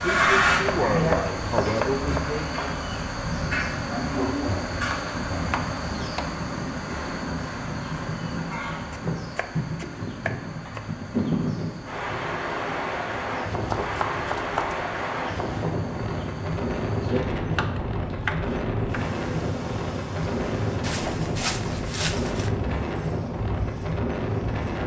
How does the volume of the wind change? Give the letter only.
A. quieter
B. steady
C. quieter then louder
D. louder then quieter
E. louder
E.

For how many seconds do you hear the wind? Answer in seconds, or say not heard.
25 s.